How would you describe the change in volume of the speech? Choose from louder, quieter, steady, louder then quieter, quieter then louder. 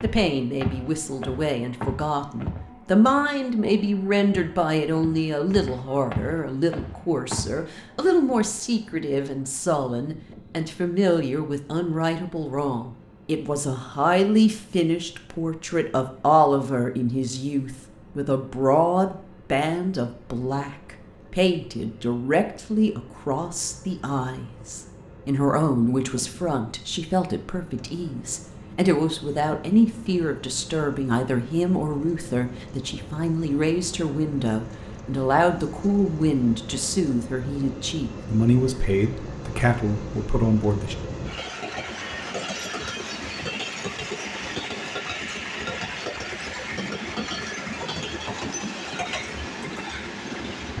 steady.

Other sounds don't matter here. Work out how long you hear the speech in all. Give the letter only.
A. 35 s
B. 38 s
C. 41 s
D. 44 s
C.